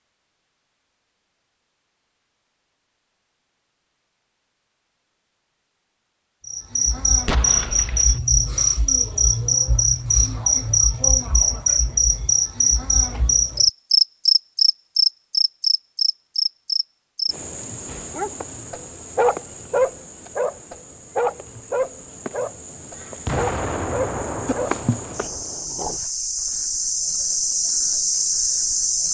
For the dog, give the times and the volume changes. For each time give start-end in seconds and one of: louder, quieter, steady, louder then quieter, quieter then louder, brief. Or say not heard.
17.9-26.1 quieter.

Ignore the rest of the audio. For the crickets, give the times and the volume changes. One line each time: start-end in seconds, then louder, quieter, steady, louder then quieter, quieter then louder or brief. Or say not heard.
6.5-29.0 quieter then louder.